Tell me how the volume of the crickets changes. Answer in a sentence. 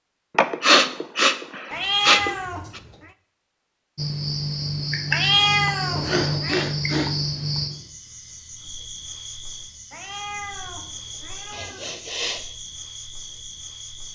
The loudness of the crickets goes down.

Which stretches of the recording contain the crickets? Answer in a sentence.
You can hear the crickets from 4.0 to 14.0 s.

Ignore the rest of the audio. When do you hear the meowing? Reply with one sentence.
You can hear the meowing from 1.7 to 2.7 s, from 5.1 to 6.7 s and from 9.9 to 11.9 s.